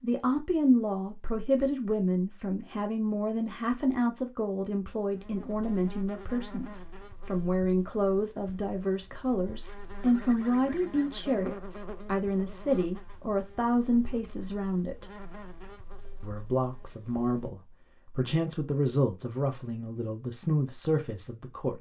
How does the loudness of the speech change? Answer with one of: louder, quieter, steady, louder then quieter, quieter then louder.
steady.